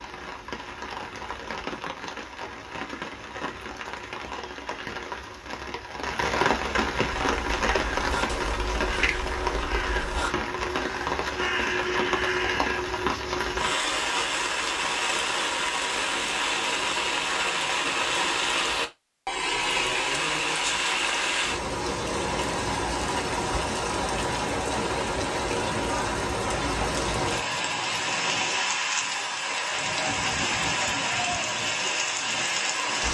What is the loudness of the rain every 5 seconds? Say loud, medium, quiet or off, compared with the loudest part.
medium, loud, loud, loud, loud, loud, loud.